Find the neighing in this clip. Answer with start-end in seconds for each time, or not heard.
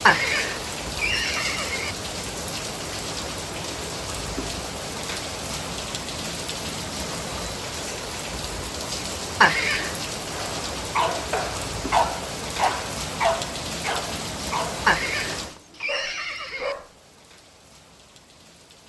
0.1-1.9, 9.4-9.9, 14.8-16.8.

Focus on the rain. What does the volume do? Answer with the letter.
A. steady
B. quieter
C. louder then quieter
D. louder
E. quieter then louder
B.